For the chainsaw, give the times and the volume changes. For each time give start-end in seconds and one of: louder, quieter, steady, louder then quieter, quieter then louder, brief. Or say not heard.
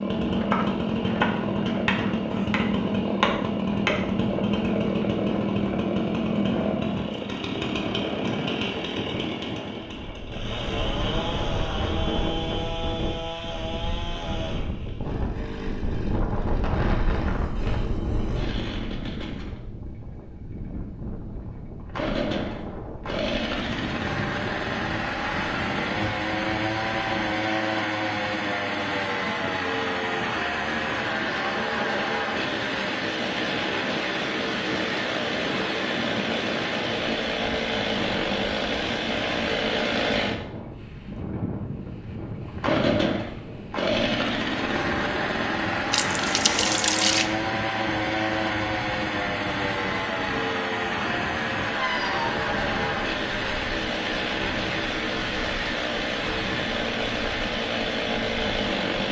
0.0-59.0 quieter then louder.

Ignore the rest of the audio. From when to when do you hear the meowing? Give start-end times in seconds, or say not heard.
51.8-52.4.